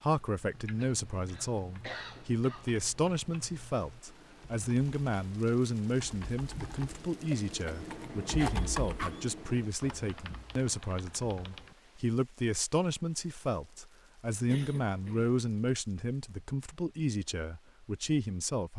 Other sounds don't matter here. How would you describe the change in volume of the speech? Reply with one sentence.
The loudness of the speech stays about the same.